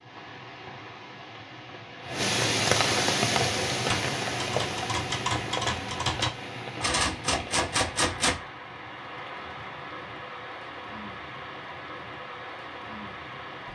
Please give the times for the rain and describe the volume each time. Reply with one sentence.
You can hear the rain from 0.0 to 13.7 s, getting quieter.